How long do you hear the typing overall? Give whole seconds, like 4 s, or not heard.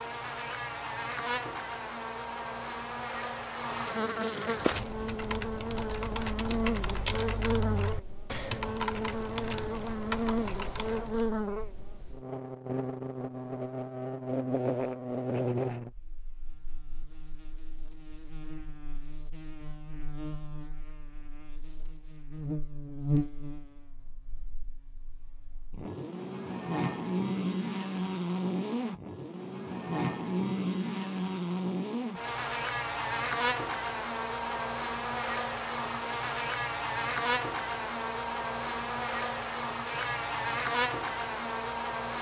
7 s.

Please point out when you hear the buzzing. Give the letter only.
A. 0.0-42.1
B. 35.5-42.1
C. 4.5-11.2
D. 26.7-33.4
A.